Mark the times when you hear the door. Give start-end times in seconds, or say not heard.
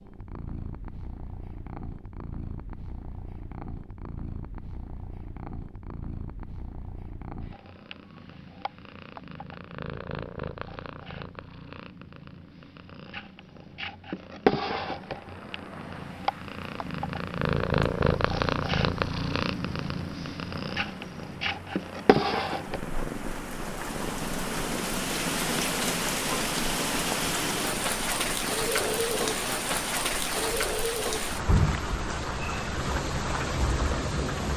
not heard.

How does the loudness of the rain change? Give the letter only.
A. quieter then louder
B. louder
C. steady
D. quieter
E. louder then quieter
B.